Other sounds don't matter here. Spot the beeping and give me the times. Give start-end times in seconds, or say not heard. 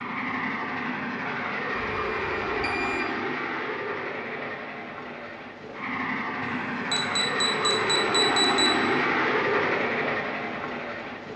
1.8-3.0, 6.4-8.8.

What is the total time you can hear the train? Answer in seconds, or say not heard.
11 s.